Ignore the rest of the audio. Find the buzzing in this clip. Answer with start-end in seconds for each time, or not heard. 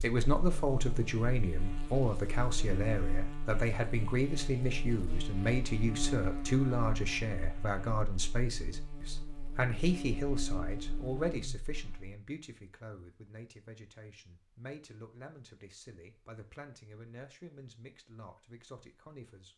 0.0-12.2.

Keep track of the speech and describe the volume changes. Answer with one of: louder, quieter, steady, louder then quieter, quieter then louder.
quieter.